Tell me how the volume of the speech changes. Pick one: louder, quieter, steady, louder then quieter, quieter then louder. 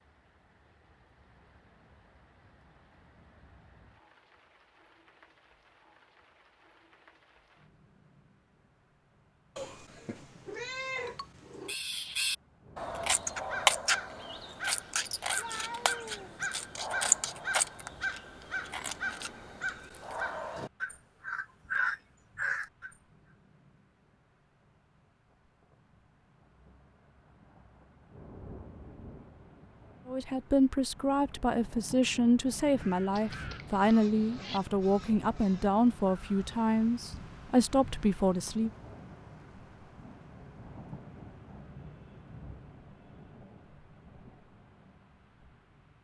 steady.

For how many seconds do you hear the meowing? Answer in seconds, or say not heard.
5 s.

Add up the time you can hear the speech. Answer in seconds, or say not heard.
9 s.